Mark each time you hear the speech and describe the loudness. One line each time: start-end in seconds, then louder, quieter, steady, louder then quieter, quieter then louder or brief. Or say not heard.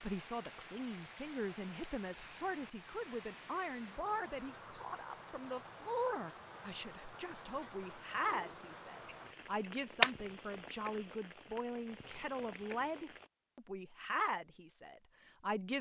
0.0-15.7 steady.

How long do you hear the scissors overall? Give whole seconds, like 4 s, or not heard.
2 s.